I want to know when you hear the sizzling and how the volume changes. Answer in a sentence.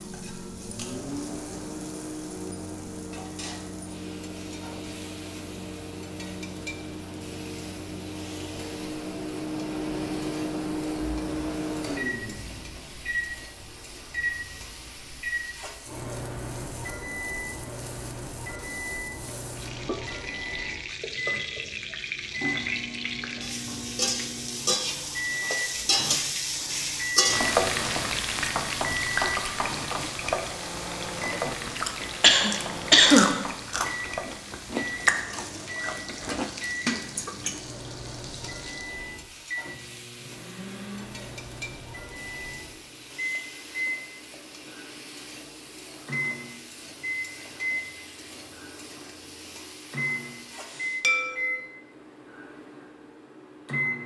You can hear the sizzling from 0.0 to 51.0 s, getting louder then quieter.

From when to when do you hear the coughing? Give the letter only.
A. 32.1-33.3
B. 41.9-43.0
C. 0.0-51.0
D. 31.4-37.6
A.